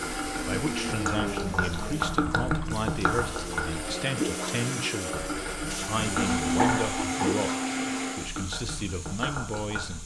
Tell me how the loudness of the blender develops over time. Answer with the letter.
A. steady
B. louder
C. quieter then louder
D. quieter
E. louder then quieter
C.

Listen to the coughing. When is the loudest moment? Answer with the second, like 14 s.
7 s.